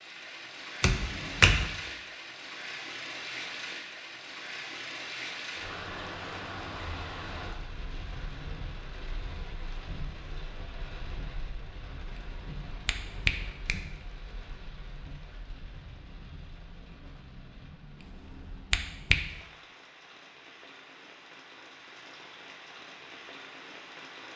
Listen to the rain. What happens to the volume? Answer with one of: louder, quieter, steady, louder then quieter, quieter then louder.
quieter.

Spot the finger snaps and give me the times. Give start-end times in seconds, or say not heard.
0.8-1.7, 12.7-13.8, 18.5-19.1.